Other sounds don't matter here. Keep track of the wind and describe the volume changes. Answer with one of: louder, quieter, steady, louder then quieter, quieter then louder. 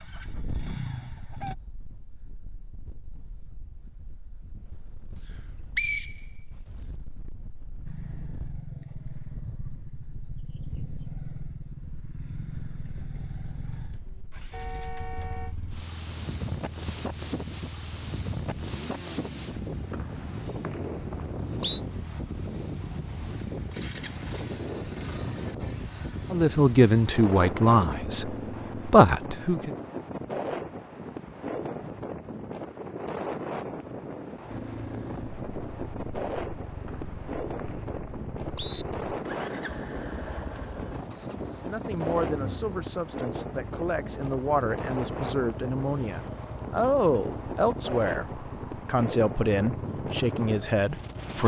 louder.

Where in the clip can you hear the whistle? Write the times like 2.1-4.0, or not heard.
5.8-6.2, 19.9-21.8, 36.9-38.9.